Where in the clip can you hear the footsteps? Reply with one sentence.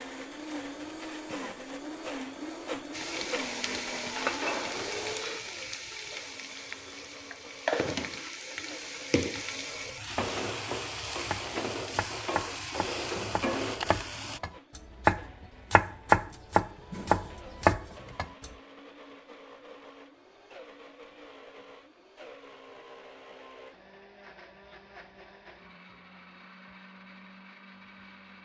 You can't hear the footsteps here.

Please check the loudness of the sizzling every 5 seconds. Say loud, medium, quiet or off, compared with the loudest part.
loud, loud, loud, off, off, off.